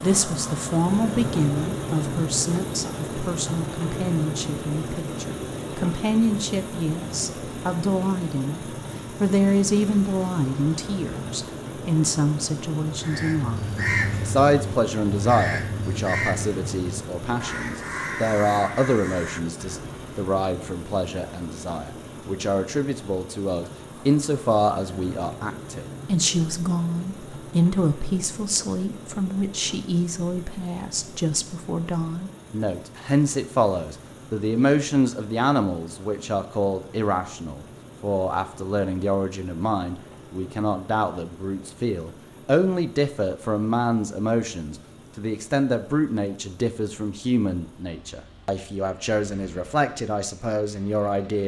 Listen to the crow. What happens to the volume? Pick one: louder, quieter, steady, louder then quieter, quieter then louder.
quieter.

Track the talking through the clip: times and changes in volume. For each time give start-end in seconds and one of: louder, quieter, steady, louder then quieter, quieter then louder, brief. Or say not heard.
0.0-51.4 steady.